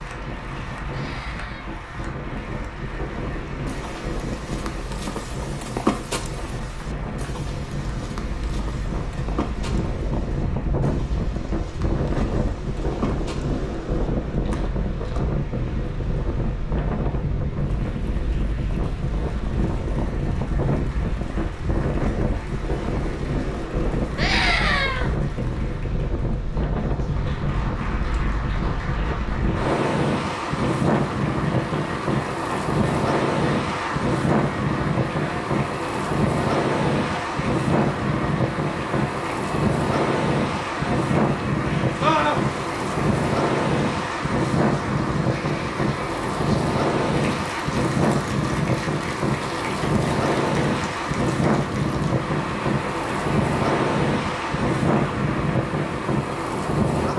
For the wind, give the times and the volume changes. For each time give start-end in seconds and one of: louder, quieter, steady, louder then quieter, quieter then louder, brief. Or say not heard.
0.0-57.1 louder.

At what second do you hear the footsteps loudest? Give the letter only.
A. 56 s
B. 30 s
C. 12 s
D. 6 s
D.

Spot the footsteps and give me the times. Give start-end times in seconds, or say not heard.
3.6-15.2.